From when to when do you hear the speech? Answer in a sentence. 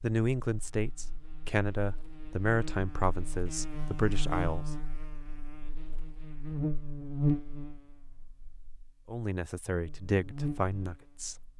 The speech can be heard from 0.0 to 4.7 s and from 9.1 to 11.4 s.